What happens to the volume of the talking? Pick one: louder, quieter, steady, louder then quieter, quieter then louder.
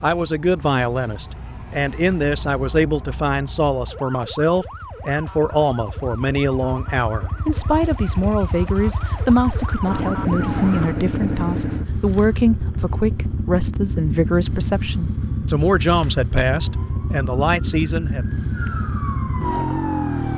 steady.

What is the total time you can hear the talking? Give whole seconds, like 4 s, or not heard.
18 s.